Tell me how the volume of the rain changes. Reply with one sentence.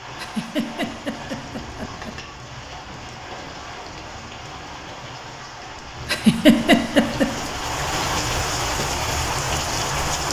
The loudness of the rain goes up.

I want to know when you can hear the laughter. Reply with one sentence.
The laughter can be heard from 0.1 to 2.1 s and from 6.0 to 7.3 s.